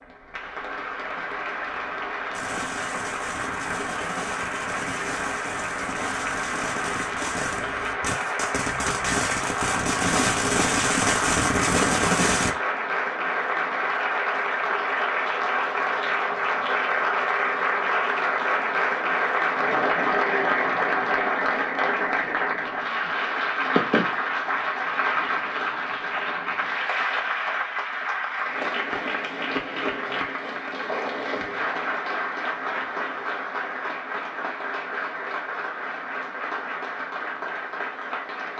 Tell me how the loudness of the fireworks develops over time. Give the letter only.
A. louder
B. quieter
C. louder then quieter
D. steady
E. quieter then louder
A.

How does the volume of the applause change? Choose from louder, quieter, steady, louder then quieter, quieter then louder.
louder then quieter.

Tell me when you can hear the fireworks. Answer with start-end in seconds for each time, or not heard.
2.3-12.5.